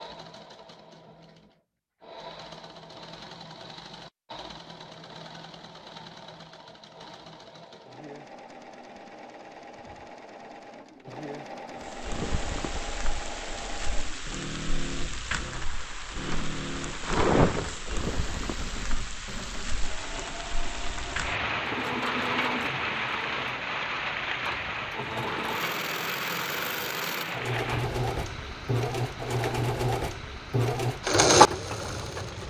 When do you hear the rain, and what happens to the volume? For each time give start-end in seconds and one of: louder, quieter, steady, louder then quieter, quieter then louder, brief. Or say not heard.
11.8-32.4 louder then quieter.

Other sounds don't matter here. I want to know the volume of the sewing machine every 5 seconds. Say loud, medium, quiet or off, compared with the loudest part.
quiet, quiet, quiet, quiet, quiet, medium, loud.